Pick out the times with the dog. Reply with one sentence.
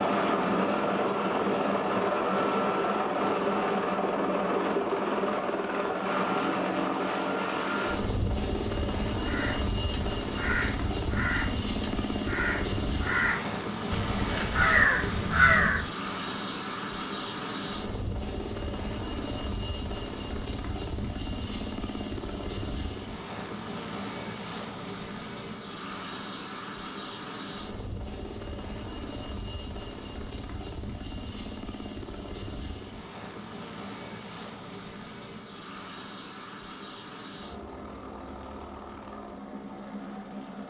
You can't hear the dog here.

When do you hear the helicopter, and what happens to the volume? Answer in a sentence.
You can hear the helicopter from 0.0 to 40.6 s, getting quieter.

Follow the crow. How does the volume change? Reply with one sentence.
The volume of the crow goes up.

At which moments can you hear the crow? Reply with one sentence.
You can hear the crow from 9.2 to 15.9 s.